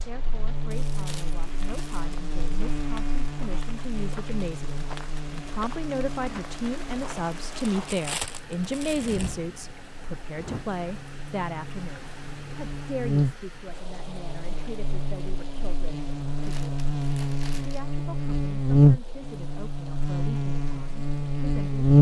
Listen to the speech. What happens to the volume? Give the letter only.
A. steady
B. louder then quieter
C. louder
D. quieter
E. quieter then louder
B.